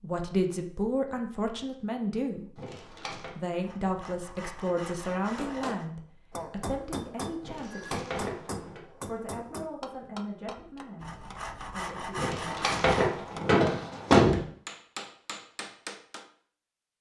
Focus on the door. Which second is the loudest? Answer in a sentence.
The loudest moment of the door is at 14 seconds.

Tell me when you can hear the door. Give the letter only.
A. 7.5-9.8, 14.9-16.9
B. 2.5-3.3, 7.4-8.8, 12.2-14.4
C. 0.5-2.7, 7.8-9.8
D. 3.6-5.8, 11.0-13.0
B.